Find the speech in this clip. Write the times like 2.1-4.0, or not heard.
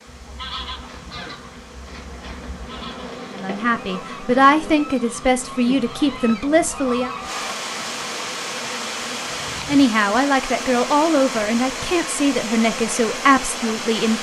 3.4-7.1, 9.7-14.1.